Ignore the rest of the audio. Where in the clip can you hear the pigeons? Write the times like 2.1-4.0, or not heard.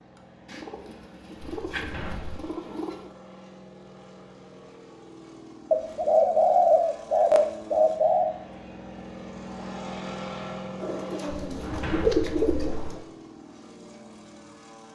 0.5-3.1, 5.7-8.3, 10.8-13.0.